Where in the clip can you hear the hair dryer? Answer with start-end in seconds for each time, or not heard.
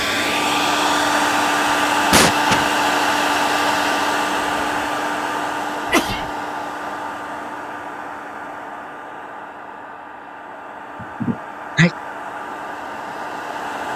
0.0-13.9.